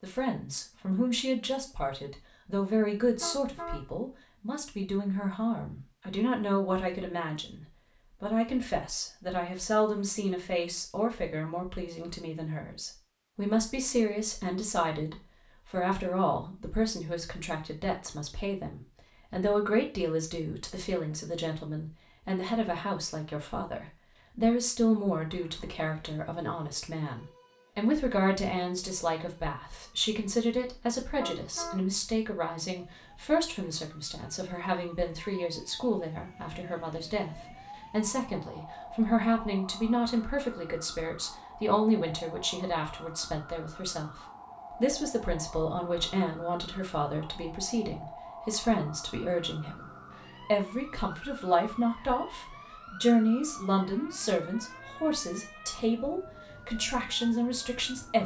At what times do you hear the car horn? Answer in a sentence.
The car horn can be heard from 3.0 to 3.9 s and from 31.0 to 31.8 s.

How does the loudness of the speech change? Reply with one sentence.
The loudness of the speech stays about the same.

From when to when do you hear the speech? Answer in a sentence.
The speech can be heard from 0.0 to 58.2 s.